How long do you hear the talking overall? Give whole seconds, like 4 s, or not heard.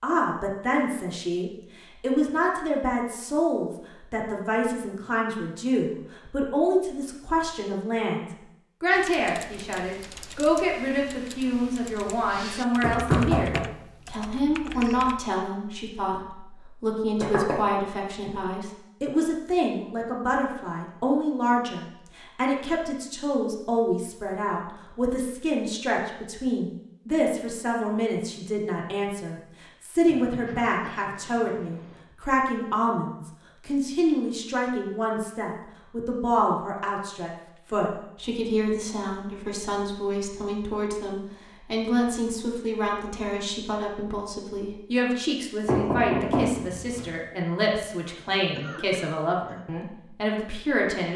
51 s.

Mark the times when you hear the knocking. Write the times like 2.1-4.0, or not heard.
12.8-13.7, 17.2-17.6, 45.6-47.1.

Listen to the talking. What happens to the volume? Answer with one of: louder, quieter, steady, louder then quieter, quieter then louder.
steady.